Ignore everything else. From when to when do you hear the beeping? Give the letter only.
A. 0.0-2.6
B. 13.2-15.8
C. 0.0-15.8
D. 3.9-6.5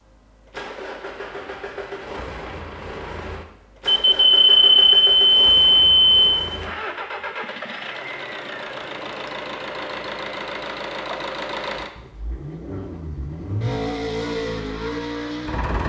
D.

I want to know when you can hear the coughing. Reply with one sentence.
The coughing can't be heard in this clip.